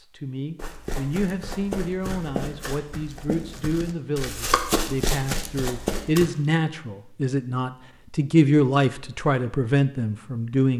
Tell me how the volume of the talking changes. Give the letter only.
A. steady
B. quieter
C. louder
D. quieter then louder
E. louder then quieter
C.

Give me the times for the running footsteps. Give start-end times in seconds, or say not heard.
0.6-6.3.